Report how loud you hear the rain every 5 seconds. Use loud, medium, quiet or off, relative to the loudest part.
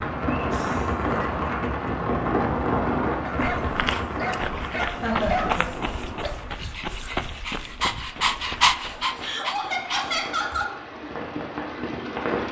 loud, quiet, medium.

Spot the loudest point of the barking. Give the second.
9 s.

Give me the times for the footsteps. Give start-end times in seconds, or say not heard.
3.4-9.1.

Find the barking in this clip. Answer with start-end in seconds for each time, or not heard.
3.0-10.7.